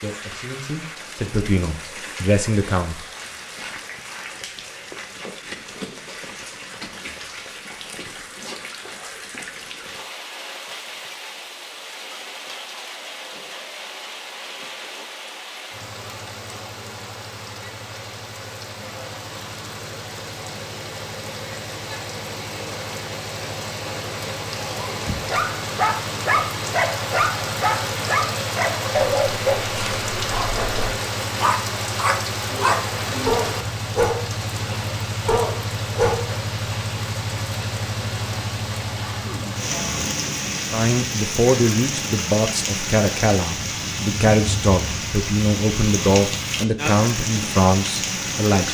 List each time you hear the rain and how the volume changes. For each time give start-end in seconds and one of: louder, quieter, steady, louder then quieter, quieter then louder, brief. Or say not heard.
0.0-48.6 louder.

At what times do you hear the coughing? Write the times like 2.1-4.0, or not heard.
39.0-39.6.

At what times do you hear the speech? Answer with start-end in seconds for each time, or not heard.
0.0-3.0, 40.7-48.6.